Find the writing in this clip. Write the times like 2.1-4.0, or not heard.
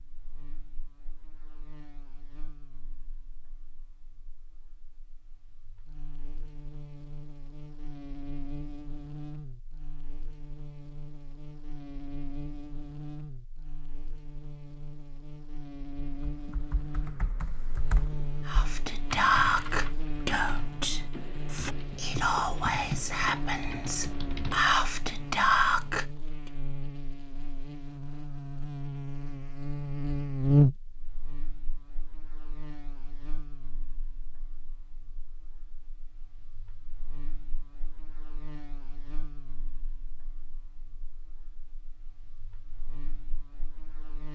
not heard.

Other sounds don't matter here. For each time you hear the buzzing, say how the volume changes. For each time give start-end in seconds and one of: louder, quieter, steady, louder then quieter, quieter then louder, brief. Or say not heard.
0.0-44.2 louder then quieter.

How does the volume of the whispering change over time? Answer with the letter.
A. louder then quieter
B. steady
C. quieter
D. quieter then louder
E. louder
D.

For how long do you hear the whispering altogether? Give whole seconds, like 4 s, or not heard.
8 s.